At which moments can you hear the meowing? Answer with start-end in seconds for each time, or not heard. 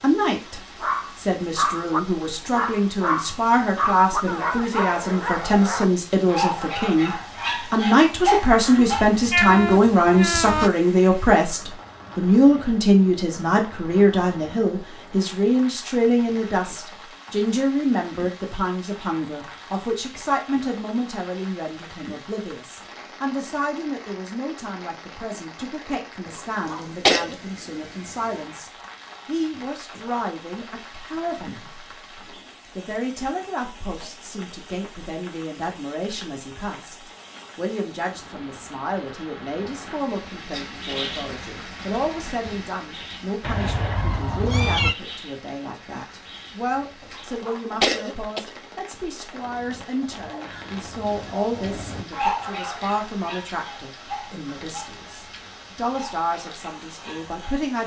8.8-10.7, 43.4-45.0.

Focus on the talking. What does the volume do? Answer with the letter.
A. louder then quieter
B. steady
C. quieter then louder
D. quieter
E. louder
D.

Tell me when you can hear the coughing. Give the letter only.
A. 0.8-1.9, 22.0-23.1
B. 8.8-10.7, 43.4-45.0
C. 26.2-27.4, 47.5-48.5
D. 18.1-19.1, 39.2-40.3
C.